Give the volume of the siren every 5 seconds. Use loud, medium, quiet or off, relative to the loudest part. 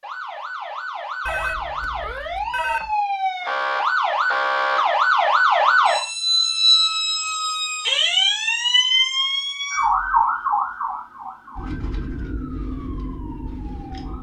medium, loud, medium.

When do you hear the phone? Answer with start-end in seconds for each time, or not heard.
1.2-3.0.